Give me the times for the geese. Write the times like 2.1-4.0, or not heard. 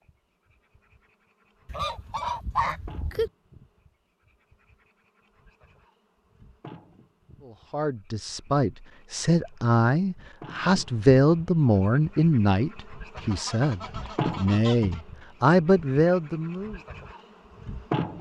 1.6-3.3, 13.2-15.1.